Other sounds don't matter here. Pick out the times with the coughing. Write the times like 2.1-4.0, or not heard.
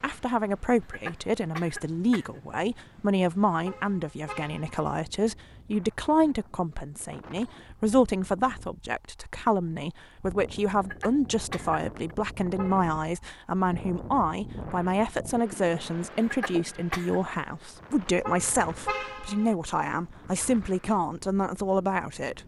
0.8-2.4, 10.8-12.2, 16.2-17.2.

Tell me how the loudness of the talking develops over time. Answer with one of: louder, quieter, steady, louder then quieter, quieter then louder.
steady.